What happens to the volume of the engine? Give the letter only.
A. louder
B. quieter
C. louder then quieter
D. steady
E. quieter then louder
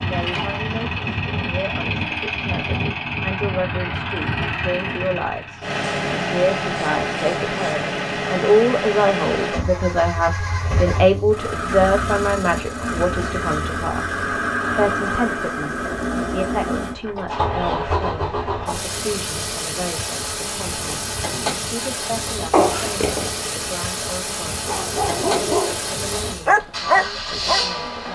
D.